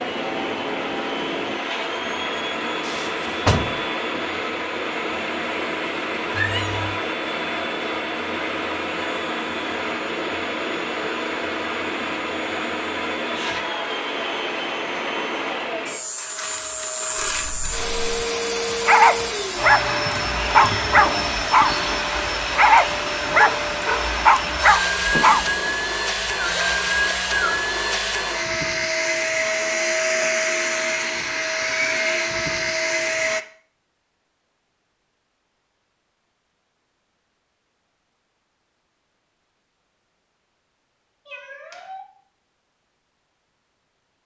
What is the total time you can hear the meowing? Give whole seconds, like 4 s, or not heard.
3 s.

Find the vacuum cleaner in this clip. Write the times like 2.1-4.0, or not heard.
0.0-33.4.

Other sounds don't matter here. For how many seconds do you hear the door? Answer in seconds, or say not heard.
2 s.